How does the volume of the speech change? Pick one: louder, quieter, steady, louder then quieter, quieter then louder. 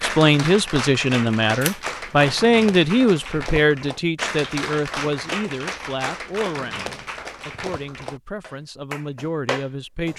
quieter.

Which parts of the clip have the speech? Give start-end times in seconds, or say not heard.
0.0-10.1.